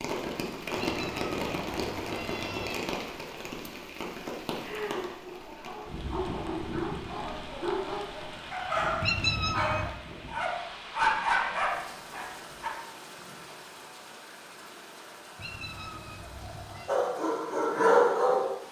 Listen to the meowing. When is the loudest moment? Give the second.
9 s.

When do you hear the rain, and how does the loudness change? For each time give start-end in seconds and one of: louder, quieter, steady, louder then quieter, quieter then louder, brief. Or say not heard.
0.0-18.6 quieter.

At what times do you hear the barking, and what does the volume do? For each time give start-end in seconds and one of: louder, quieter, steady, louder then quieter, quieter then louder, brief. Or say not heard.
5.2-12.7 louder
16.9-18.5 brief.